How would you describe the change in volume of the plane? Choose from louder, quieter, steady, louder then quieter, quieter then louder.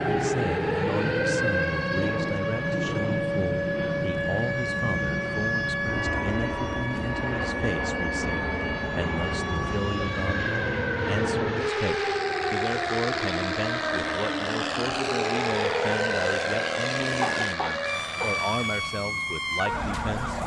steady.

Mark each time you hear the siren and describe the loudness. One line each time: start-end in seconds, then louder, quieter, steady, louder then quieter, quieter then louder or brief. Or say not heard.
0.0-20.4 steady.